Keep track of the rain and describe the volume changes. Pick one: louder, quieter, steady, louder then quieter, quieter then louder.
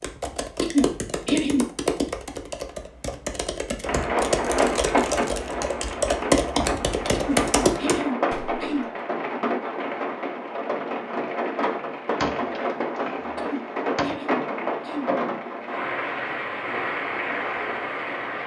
steady.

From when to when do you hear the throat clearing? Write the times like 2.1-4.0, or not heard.
0.6-1.6, 7.1-8.9, 13.3-15.1.